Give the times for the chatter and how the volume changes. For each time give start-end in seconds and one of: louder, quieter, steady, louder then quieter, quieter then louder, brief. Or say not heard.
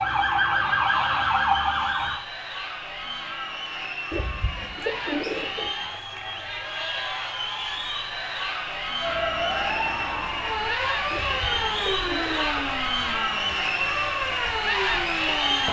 0.0-15.6 louder.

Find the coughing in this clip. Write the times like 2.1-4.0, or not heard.
not heard.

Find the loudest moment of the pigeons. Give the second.
5 s.